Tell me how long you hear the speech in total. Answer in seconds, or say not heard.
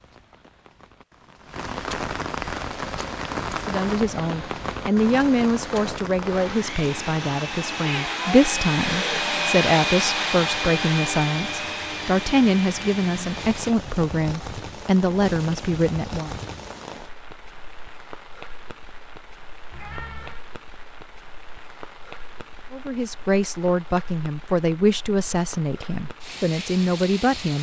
18 s.